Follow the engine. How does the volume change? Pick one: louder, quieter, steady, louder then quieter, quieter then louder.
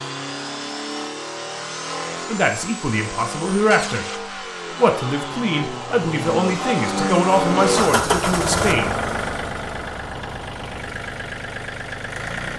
louder then quieter.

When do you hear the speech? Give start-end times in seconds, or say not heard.
2.2-4.0, 4.8-8.9.